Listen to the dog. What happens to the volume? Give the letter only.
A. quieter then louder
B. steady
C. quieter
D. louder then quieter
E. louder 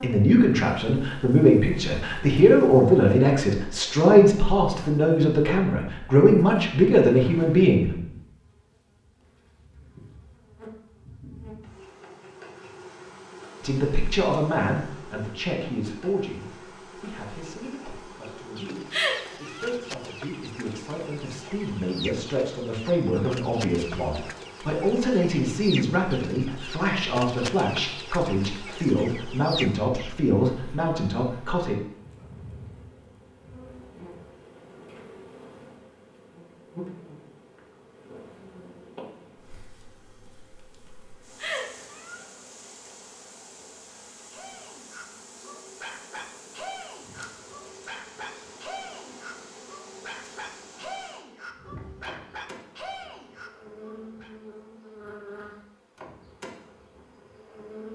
B.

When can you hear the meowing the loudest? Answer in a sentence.
The volume of the meowing peaks at 19 seconds.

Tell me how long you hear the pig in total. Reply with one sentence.
The pig can't be heard in this clip.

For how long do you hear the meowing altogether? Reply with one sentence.
You can hear the meowing for 2 seconds altogether.